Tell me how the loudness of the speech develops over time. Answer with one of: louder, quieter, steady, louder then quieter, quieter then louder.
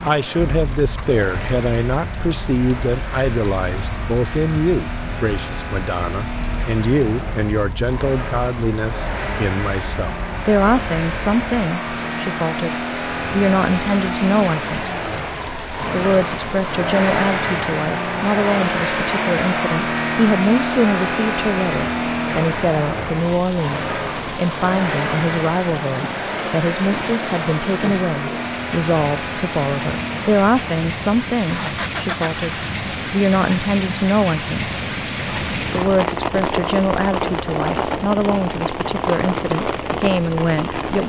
steady.